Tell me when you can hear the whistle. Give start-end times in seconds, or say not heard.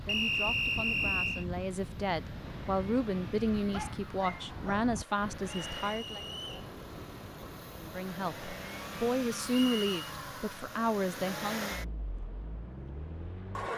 0.1-1.4, 5.6-6.7, 9.4-9.9.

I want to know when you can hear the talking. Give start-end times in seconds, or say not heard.
0.1-6.2, 7.8-11.8.